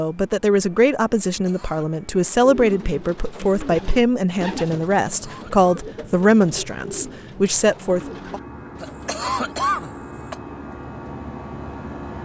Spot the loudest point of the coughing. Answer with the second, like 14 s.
10 s.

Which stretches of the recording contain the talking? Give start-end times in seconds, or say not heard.
0.0-8.4.